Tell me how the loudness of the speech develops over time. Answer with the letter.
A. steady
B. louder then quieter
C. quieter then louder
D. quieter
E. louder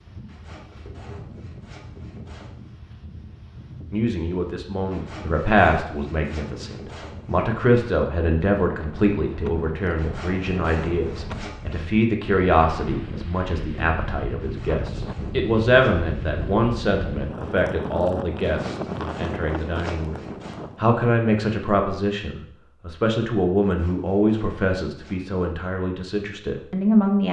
A.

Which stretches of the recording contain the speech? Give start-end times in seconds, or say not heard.
3.9-27.2.